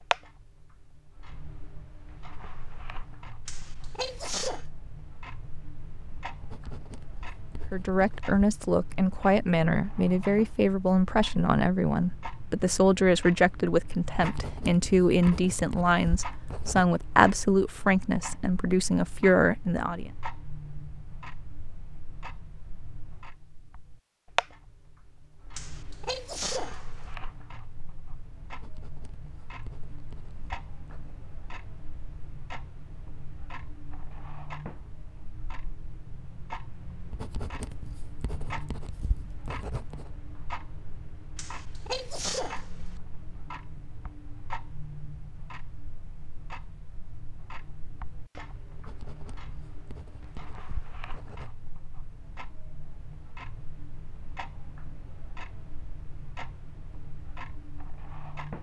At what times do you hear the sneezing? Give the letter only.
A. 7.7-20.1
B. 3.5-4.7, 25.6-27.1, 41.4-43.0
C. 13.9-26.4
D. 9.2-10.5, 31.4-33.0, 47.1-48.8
B.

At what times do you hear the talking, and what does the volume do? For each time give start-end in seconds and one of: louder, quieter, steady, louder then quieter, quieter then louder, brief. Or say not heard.
7.7-20.1 steady.